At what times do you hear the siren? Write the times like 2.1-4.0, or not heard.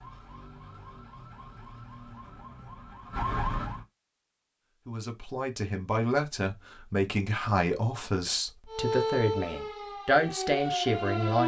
0.0-3.9, 8.7-11.4.